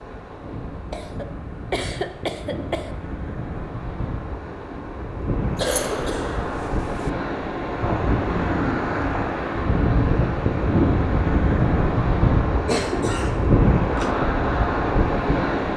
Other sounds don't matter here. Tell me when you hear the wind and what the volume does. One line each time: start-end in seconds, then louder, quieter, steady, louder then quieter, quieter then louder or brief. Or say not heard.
0.0-15.7 louder.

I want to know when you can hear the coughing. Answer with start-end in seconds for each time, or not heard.
0.9-2.9, 5.5-7.1, 12.7-14.2.